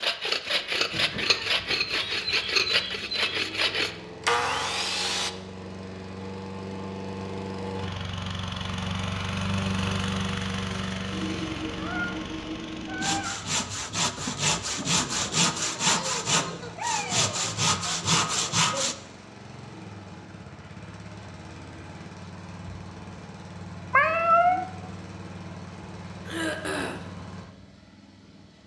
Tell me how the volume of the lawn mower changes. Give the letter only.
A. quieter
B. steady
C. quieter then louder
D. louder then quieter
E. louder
D.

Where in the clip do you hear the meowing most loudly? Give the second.
24 s.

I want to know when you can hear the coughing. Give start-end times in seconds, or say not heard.
26.2-27.0.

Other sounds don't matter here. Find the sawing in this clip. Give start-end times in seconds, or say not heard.
0.0-5.3, 13.0-18.9.